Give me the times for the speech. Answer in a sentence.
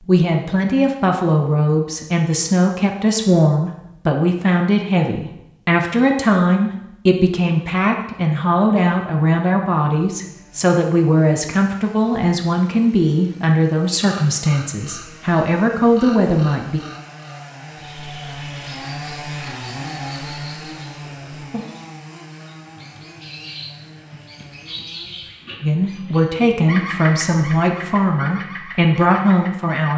You can hear the speech from 0.1 to 16.8 s and from 25.6 to 29.9 s.